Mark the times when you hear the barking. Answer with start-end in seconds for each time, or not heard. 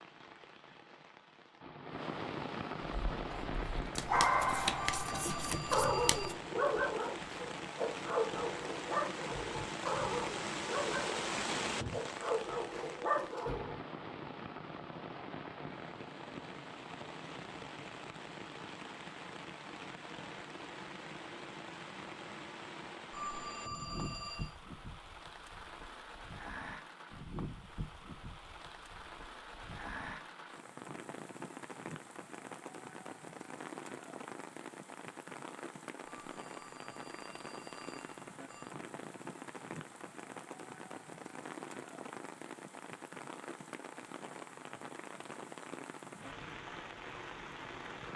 2.9-13.8.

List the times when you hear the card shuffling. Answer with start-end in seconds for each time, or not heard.
4.0-6.3.